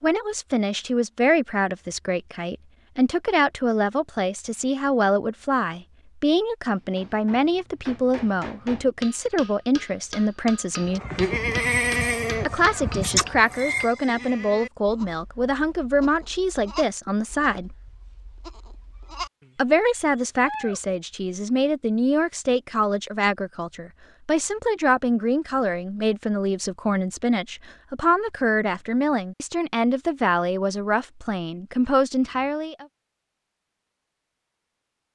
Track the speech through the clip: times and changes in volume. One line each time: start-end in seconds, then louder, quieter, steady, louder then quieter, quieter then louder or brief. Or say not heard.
0.0-11.0 steady
12.4-17.8 steady
19.6-32.9 steady.